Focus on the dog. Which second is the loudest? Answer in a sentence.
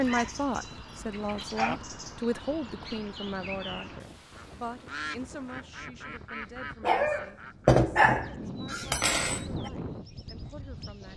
The loudest moment of the dog is at 8 seconds.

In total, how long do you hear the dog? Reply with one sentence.
You can hear the dog for 5 seconds altogether.